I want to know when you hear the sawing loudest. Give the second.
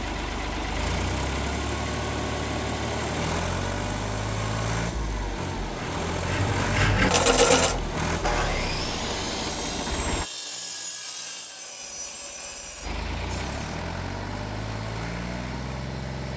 7 s.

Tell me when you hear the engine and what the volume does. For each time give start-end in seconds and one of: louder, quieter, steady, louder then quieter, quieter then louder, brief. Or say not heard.
0.0-10.3 steady
11.8-16.3 louder.